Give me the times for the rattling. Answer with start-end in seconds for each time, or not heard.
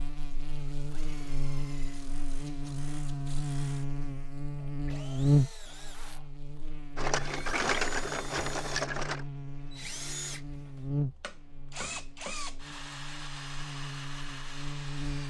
7.0-9.2.